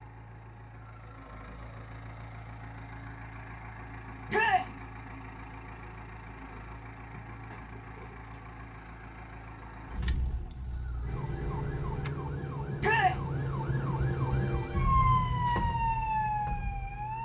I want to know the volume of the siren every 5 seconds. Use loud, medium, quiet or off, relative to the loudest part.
off, off, loud, loud.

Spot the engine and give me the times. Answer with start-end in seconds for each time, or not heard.
0.0-12.1.